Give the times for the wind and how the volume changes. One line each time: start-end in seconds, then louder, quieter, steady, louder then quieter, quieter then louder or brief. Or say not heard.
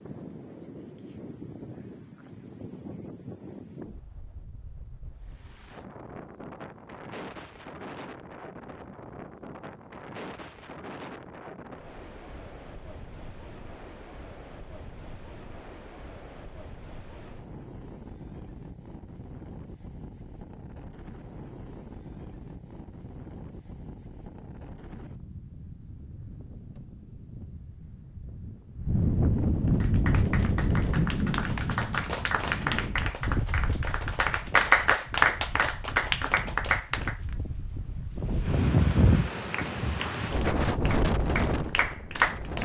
0.0-42.6 louder.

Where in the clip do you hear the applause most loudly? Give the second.
35 s.